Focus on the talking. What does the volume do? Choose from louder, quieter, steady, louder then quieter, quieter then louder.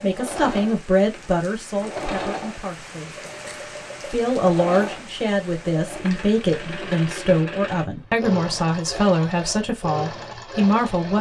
steady.